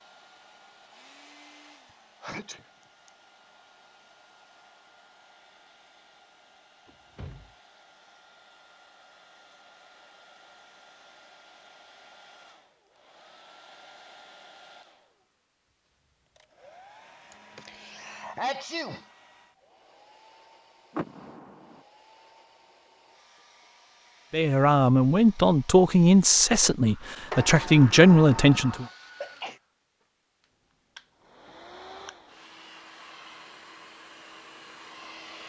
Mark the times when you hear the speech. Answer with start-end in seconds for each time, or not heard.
24.3-28.9.